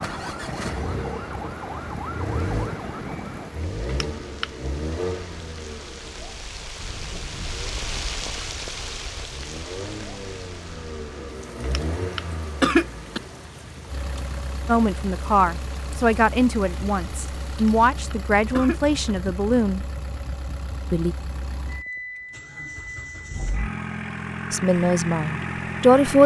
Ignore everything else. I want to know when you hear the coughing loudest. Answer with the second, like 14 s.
13 s.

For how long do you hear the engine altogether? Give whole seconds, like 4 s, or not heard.
26 s.